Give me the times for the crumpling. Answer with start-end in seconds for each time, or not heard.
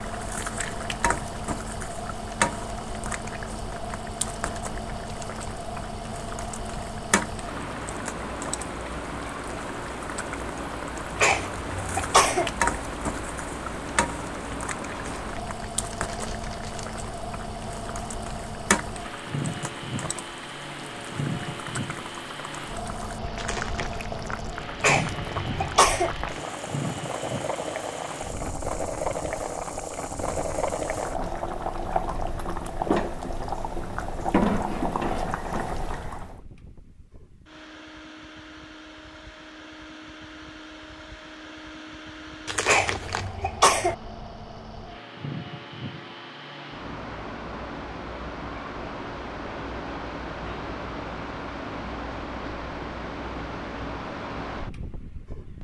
14.9-16.9, 23.4-24.1, 42.5-43.4.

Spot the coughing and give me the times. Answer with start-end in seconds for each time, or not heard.
11.2-12.5, 24.8-26.1, 42.6-44.0.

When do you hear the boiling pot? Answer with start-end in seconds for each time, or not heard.
0.0-36.4.